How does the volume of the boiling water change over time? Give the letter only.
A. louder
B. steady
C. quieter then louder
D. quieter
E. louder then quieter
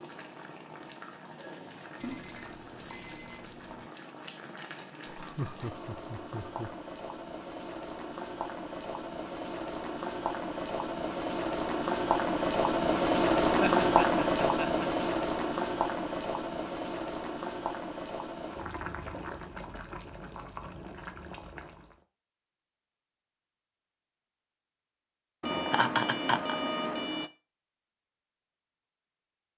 E.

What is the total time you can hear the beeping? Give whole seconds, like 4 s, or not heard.
4 s.